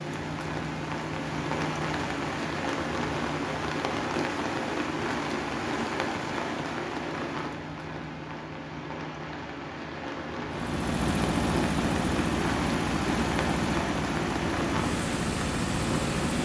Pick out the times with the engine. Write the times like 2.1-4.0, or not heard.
10.5-16.3.